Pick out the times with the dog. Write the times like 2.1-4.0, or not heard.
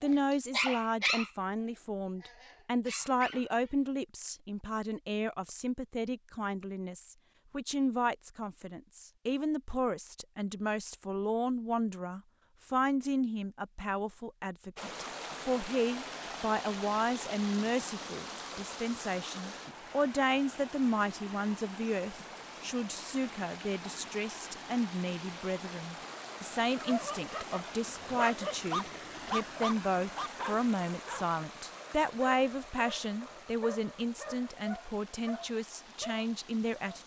0.0-3.8, 26.8-37.0.